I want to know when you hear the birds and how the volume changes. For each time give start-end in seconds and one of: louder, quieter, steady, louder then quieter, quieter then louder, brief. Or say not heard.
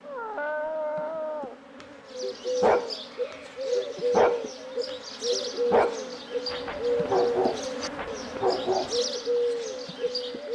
2.0-10.5 steady.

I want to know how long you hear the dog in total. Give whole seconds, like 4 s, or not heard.
9 s.